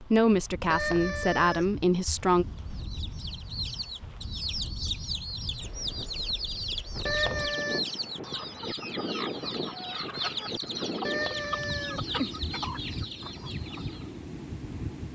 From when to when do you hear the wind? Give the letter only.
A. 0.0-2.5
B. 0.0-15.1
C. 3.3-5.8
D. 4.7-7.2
B.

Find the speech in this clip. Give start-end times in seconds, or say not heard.
0.0-2.5.